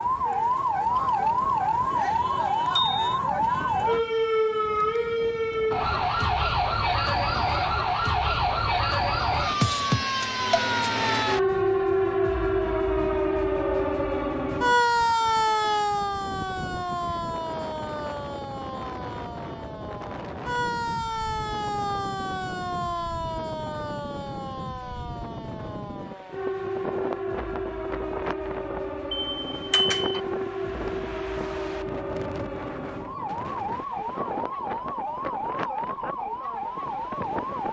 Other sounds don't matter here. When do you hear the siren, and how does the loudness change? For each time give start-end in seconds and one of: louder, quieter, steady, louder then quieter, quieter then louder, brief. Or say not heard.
0.0-37.6 quieter.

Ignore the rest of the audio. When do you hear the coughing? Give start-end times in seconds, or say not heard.
not heard.